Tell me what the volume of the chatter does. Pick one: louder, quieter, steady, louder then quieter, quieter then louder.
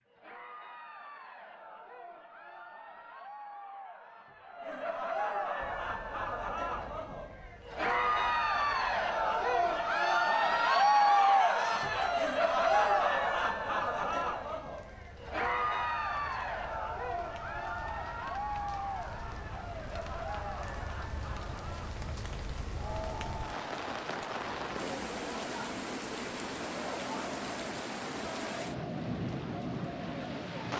louder then quieter.